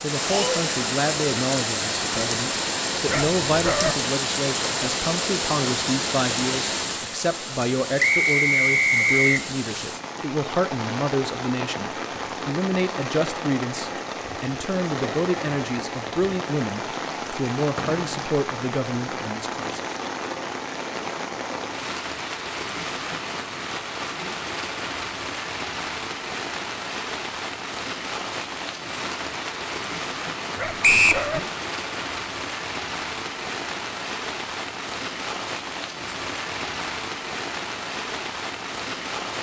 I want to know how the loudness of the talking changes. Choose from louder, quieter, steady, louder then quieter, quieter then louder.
steady.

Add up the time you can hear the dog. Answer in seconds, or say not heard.
2 s.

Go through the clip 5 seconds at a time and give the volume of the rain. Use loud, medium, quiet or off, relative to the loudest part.
loud, loud, medium, medium, medium, medium, medium, medium.